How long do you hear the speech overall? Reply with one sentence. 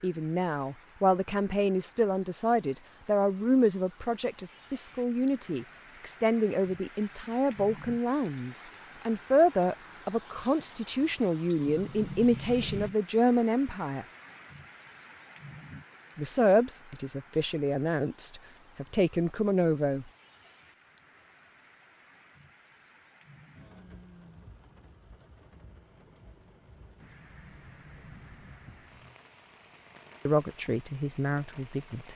The speech can be heard for 20 seconds in total.